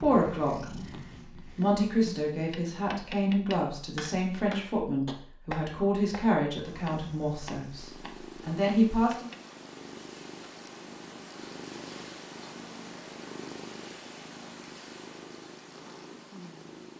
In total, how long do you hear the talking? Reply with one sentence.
You can hear the talking for 9 seconds altogether.